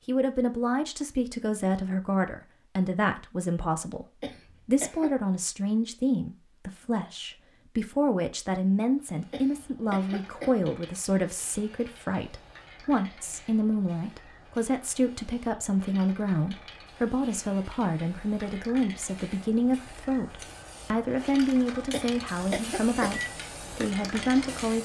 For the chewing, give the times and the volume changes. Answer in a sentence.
You can't hear the chewing here.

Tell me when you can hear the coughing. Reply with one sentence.
You can hear the coughing from 4.2 to 5.1 s, from 9.3 to 10.6 s and from 21.9 to 23.1 s.